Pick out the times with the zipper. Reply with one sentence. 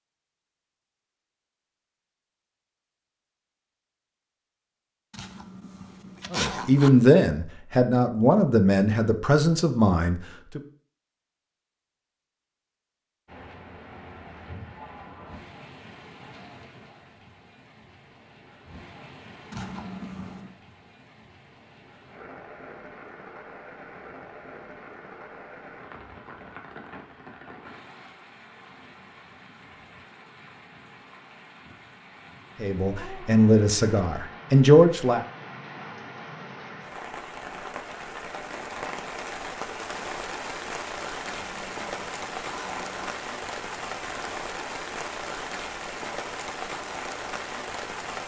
The zipper can be heard from 5.1 to 6.9 s, from 19.5 to 20.5 s and from 41.3 to 43.1 s.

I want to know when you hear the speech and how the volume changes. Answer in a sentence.
You can hear the speech from 6.3 to 10.6 s, getting quieter; and briefly from 32.6 to 35.2 s.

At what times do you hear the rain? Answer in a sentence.
The rain can be heard from 13.2 to 48.2 s.